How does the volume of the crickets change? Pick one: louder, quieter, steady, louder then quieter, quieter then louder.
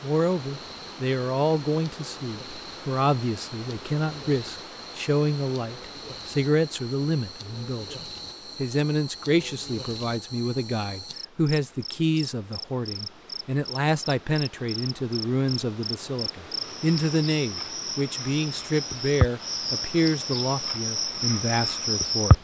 louder.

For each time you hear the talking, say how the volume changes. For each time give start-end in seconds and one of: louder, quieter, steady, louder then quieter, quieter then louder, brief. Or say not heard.
0.0-22.3 steady.